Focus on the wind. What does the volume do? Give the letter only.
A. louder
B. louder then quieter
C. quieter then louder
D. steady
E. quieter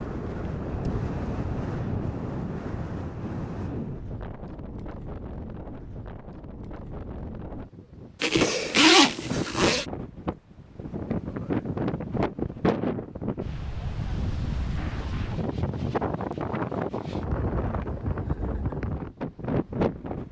C.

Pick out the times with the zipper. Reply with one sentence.
You can hear the zipper from 8.2 to 9.8 s.